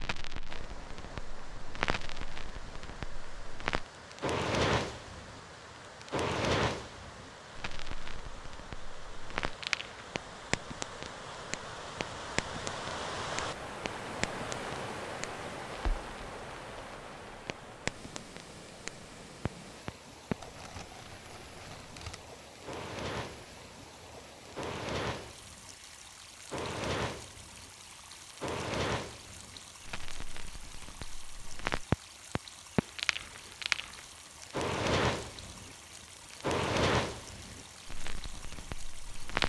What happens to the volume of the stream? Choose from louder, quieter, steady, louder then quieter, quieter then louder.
louder then quieter.